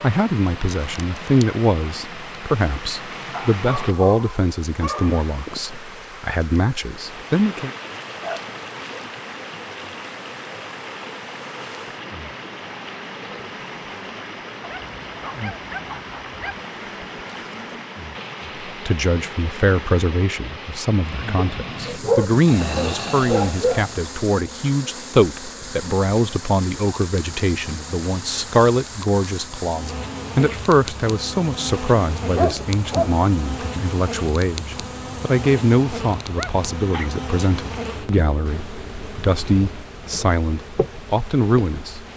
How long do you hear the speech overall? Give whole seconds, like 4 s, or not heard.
31 s.